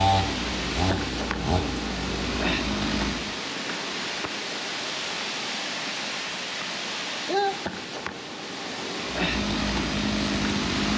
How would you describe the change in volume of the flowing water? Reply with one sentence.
The volume of the flowing water stays about the same.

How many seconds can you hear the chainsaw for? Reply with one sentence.
The chainsaw can be heard for 5 seconds in total.